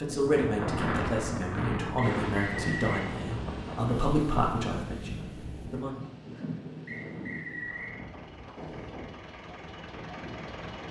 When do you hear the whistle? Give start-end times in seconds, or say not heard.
1.9-3.0, 6.8-8.0.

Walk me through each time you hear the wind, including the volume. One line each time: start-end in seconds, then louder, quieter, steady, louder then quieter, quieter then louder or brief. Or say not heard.
0.0-10.7 quieter.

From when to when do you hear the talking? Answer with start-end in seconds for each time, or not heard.
0.0-6.0.